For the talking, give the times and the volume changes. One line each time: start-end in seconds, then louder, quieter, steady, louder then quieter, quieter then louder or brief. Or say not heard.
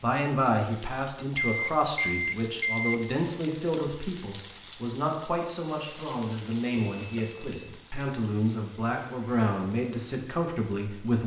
0.0-11.2 steady.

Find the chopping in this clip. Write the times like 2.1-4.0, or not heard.
not heard.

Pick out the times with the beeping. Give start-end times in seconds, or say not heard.
1.4-3.0, 6.8-8.1.